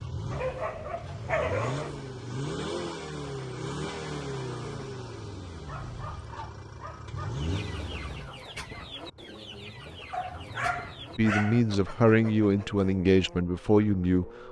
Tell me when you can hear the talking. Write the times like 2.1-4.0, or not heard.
11.2-14.4.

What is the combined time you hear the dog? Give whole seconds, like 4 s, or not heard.
5 s.